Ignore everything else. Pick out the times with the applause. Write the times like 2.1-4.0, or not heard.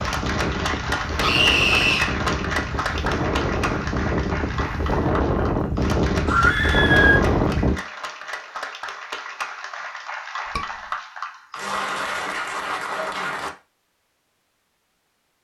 0.0-13.5.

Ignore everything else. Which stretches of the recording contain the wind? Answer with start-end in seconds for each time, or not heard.
0.0-7.8.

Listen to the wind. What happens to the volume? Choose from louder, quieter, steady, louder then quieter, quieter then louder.
louder.